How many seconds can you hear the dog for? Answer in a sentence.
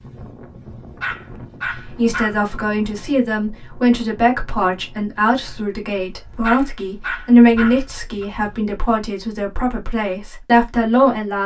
You can hear the dog for 3 seconds altogether.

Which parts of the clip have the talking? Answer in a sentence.
The talking can be heard from 1.8 to 11.4 s.